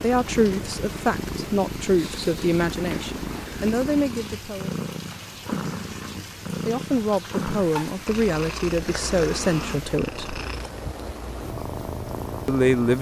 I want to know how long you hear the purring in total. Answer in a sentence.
The purring can be heard for 13 seconds in total.